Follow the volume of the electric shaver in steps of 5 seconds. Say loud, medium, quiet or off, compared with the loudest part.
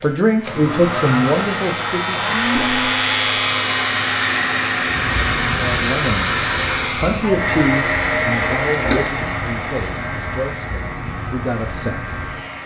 loud, medium, medium.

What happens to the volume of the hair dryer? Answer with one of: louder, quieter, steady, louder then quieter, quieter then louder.
quieter.